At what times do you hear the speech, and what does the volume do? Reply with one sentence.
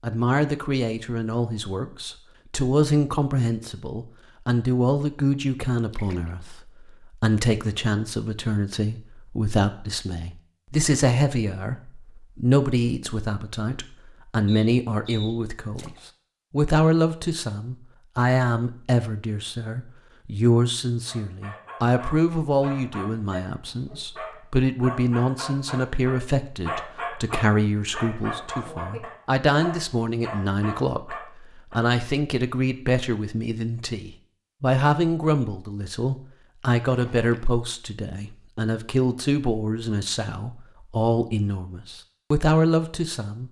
You can hear the speech from 0.0 to 43.4 s, at a steady volume.